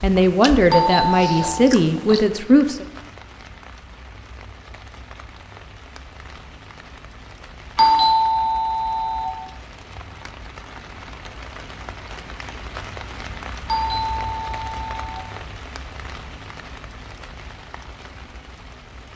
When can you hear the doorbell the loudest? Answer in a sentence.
The loudest moment of the doorbell is at 8 seconds.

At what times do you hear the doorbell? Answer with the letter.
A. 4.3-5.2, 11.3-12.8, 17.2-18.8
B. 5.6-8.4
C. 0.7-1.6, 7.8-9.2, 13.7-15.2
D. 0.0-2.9
C.